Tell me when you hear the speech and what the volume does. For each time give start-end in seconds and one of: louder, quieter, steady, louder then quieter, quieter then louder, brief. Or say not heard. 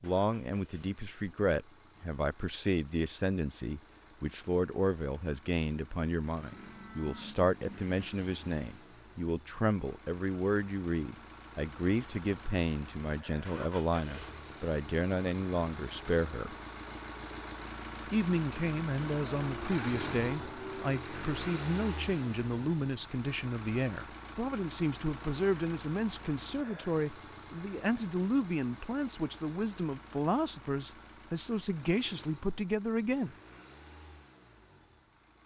0.0-16.6 steady
18.1-33.4 steady.